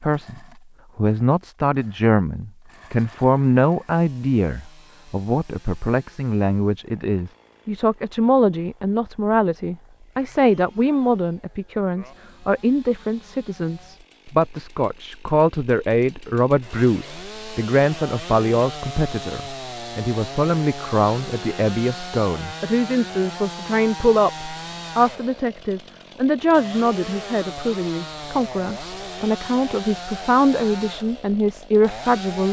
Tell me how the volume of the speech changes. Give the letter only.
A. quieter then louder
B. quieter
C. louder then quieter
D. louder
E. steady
E.